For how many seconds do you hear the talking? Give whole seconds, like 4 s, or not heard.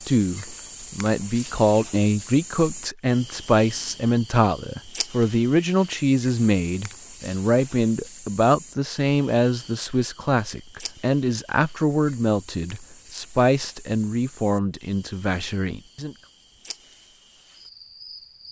16 s.